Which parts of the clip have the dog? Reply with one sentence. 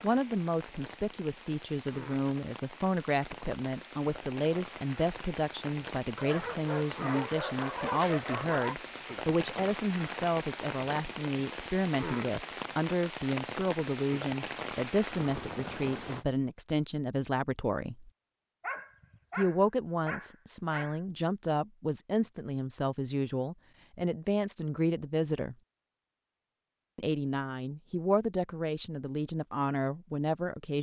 You can hear the dog from 6.2 to 8.8 s and from 18.6 to 21.0 s.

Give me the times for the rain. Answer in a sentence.
You can hear the rain from 0.0 to 16.2 s.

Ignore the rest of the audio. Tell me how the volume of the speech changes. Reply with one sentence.
The volume of the speech stays about the same.